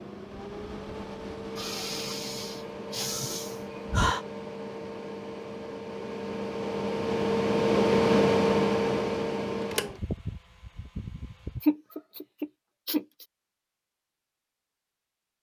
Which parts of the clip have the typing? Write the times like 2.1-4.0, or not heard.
not heard.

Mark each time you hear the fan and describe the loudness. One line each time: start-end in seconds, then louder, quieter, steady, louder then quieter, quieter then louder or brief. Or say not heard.
0.0-11.7 louder then quieter.